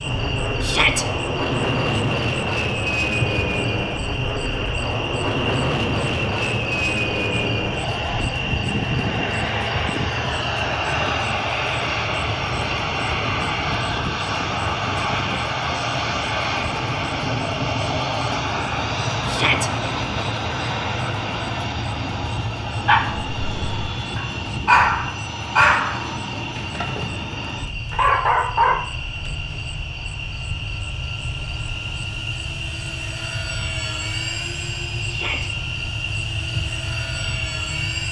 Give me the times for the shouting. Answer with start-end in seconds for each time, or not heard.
0.6-1.1, 19.2-19.7, 35.0-35.5.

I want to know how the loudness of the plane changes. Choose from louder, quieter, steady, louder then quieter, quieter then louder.
quieter.